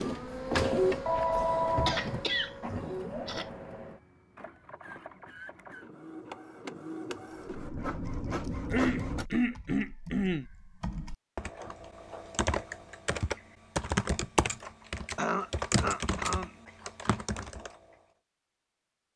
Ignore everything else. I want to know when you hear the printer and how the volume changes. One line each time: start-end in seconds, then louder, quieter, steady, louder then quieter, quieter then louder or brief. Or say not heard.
0.0-9.2 quieter then louder.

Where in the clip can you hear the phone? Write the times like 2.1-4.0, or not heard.
1.1-2.5.